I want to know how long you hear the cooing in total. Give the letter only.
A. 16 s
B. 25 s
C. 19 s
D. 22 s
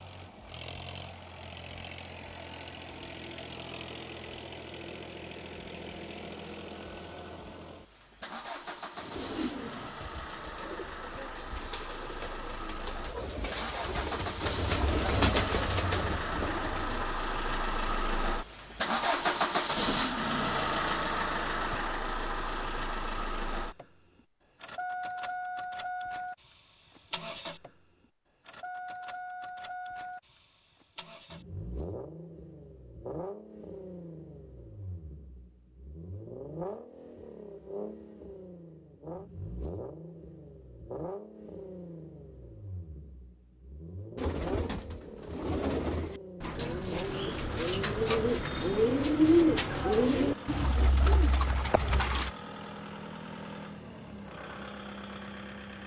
A.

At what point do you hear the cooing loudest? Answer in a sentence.
The loudest moment of the cooing is at 49 seconds.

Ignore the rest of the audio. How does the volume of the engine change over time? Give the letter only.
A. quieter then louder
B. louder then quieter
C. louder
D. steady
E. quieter
B.